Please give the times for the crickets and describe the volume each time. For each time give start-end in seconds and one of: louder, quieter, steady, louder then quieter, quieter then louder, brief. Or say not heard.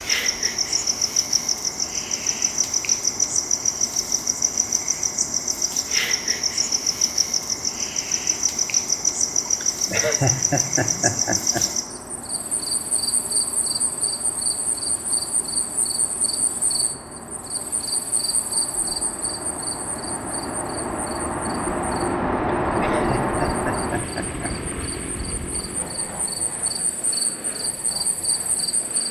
0.0-29.0 quieter.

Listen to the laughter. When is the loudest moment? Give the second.
10 s.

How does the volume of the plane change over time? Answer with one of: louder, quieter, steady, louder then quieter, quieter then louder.
louder.